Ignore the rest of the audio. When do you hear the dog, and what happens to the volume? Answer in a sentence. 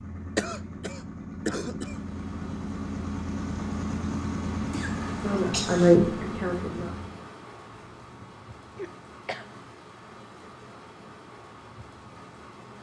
You can't hear the dog here.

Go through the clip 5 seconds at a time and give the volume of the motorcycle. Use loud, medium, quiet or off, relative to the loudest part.
loud, loud, off.